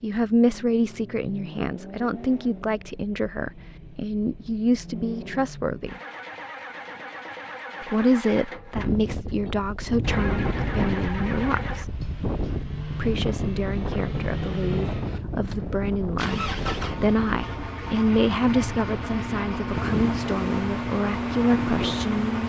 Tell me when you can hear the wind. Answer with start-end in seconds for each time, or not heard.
8.7-22.4.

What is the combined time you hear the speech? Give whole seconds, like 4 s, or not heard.
20 s.